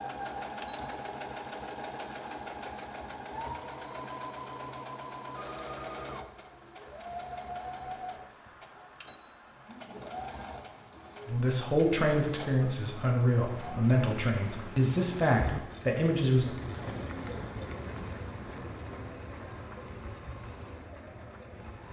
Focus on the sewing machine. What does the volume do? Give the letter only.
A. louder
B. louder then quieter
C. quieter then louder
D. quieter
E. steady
D.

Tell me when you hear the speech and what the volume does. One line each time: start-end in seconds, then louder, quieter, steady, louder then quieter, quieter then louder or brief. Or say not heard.
11.2-16.5 steady.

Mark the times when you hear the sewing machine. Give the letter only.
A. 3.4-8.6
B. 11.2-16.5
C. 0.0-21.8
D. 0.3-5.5
C.